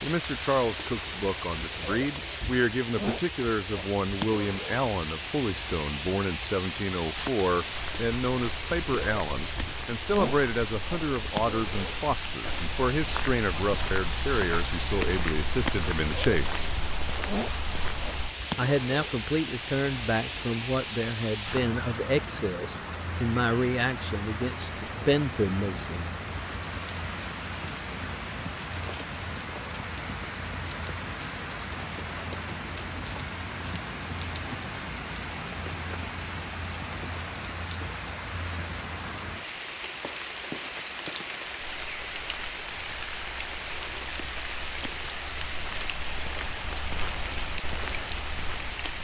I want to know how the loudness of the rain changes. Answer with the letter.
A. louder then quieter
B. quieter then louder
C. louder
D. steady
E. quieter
D.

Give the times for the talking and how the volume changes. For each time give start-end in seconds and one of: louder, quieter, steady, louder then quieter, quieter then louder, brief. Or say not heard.
0.0-16.6 steady
18.6-26.1 steady.